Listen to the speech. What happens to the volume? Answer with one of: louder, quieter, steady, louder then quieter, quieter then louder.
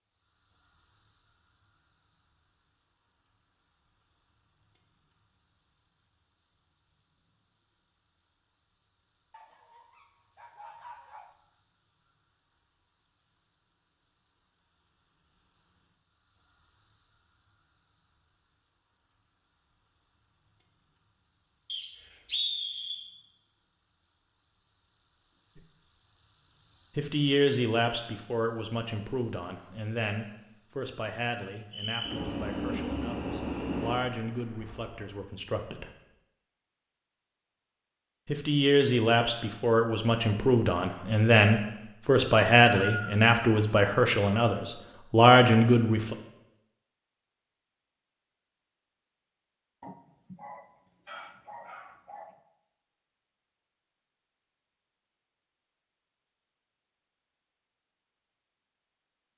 quieter then louder.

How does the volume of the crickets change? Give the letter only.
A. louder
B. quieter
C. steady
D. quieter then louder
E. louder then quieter
A.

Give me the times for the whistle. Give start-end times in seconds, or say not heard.
21.6-23.1, 42.3-43.2.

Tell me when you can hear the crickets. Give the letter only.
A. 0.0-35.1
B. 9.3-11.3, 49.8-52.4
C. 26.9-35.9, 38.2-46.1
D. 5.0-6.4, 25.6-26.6
A.